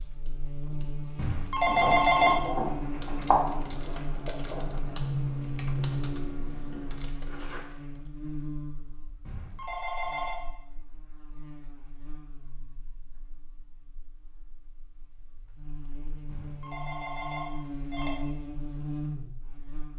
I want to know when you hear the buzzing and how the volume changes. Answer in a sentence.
You can hear the buzzing from 0.0 to 19.9 s, getting quieter then louder.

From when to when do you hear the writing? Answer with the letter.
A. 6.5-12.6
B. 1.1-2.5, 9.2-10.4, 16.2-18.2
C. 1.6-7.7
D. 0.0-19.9
C.